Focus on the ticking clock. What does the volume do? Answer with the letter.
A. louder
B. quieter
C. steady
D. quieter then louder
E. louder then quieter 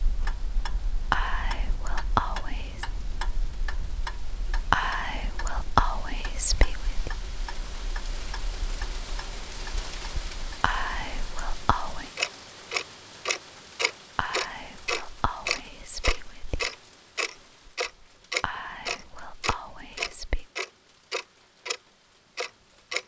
A.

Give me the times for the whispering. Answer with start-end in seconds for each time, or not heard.
1.1-2.9, 4.7-7.1, 10.6-12.1, 14.2-16.7, 18.4-20.4.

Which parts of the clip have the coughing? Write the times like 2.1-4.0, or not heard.
not heard.